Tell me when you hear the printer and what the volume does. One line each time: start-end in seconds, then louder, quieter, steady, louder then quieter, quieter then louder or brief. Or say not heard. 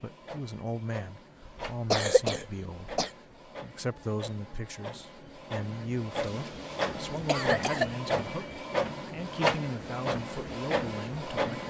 0.0-11.6 louder.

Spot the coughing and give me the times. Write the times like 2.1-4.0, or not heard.
1.4-3.1, 6.1-7.9.